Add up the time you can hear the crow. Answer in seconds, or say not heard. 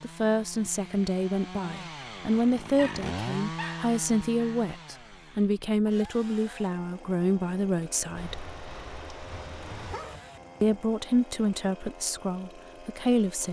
not heard.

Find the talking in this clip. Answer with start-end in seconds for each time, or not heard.
0.0-8.4, 10.6-13.4.